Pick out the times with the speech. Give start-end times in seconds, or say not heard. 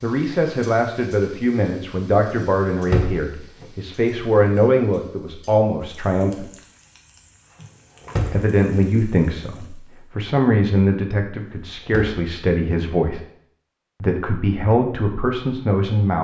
0.0-6.5, 8.3-13.2, 14.0-16.1.